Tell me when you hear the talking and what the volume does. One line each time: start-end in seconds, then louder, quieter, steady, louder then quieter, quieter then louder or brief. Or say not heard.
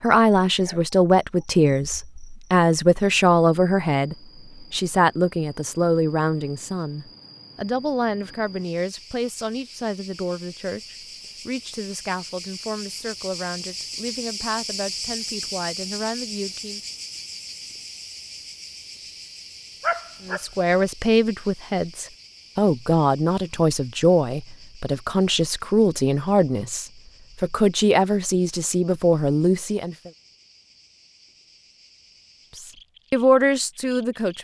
0.0-16.8 quieter
20.2-30.1 steady
32.5-34.3 brief.